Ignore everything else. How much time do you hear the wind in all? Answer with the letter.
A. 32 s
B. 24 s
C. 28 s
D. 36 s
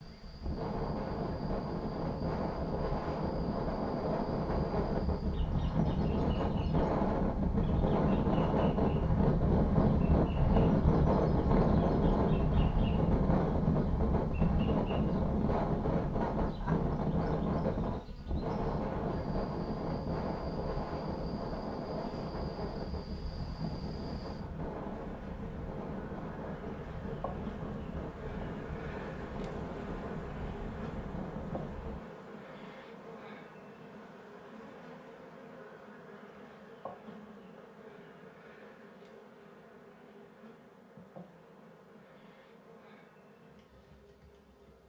A.